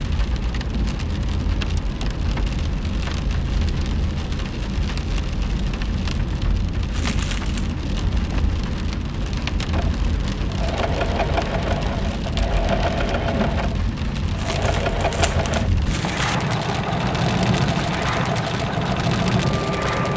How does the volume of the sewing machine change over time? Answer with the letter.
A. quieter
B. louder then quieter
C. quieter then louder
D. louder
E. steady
E.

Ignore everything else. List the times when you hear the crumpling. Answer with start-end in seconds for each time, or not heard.
6.9-7.7, 14.3-16.4.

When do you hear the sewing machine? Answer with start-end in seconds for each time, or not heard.
9.7-20.1.